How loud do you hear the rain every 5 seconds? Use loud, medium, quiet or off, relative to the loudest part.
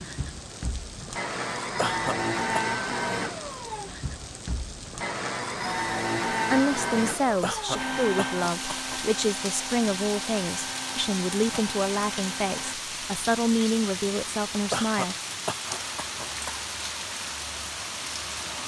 medium, loud, loud, loud.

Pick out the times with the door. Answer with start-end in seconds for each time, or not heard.
not heard.